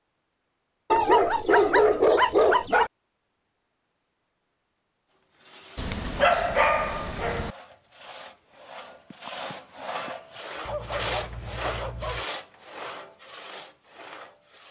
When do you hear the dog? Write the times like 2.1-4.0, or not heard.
0.9-2.9, 5.8-7.5, 10.7-12.2.